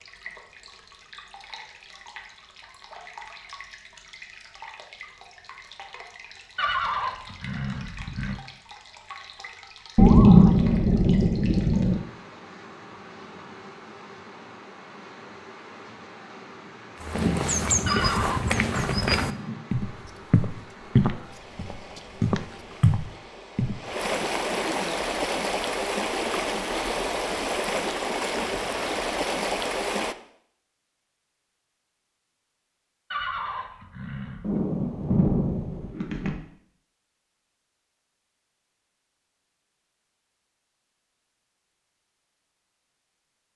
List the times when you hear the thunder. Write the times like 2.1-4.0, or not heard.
9.9-12.0, 17.1-19.6, 34.4-36.4.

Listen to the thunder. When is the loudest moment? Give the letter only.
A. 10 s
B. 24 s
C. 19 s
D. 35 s
A.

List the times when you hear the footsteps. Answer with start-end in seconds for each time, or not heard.
17.0-24.2.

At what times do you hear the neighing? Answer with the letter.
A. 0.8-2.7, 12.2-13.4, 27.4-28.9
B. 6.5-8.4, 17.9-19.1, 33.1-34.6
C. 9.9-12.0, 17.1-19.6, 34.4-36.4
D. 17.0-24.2
B.